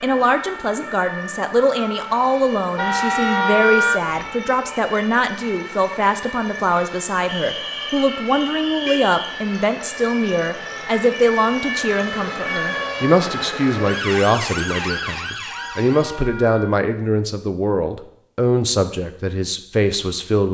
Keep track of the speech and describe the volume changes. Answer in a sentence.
The loudness of the speech stays about the same.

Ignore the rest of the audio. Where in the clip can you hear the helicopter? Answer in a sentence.
The helicopter can't be heard in this clip.